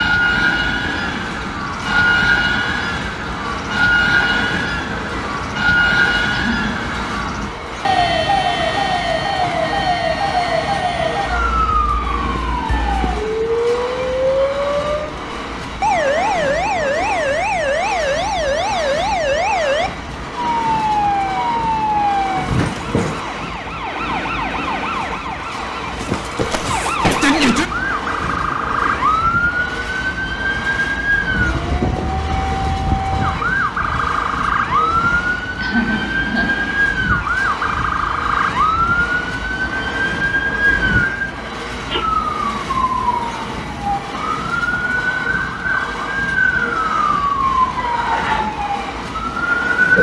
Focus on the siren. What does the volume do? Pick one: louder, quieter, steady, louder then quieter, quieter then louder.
steady.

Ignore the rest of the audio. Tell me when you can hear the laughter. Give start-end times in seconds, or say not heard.
6.3-6.8, 35.6-36.6.